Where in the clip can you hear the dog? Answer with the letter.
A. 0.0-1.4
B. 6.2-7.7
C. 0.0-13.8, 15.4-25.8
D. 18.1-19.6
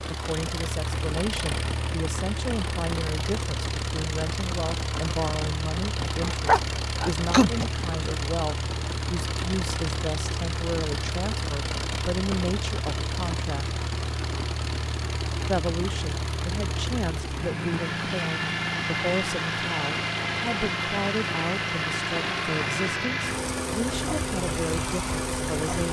B.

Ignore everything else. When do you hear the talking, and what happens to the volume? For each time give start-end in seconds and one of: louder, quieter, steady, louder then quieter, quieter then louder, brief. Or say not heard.
0.0-13.8 steady
15.4-25.8 steady.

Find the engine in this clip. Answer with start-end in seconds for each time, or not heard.
0.0-25.8.